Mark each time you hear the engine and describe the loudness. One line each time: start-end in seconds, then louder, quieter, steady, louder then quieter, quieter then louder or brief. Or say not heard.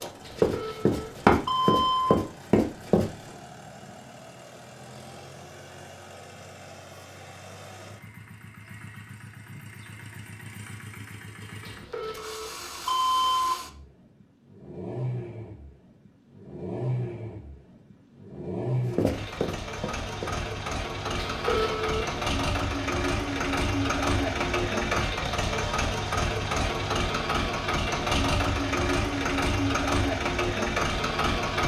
0.0-31.6 louder.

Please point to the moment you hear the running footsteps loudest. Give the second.
1 s.